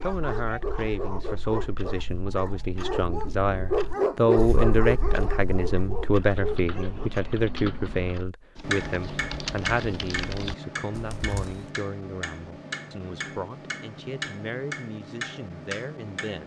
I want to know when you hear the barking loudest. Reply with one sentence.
The loudest moment of the barking is at 4 seconds.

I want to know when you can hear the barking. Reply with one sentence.
The barking can be heard from 0.0 to 7.1 s.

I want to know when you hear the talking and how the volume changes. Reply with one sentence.
You can hear the talking from 0.0 to 16.4 s, getting louder then quieter.